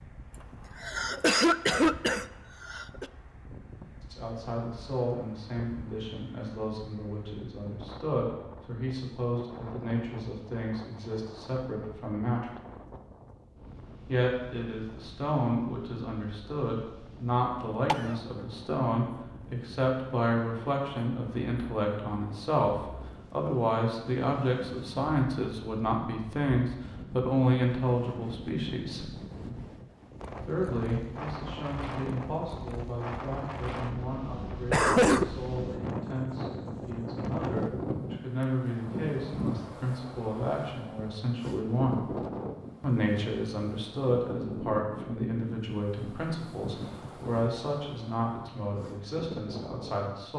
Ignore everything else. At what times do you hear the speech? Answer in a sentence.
The speech can be heard from 4.0 to 12.6 s, from 14.1 to 29.1 s, from 30.4 to 42.0 s and from 42.8 to 50.3 s.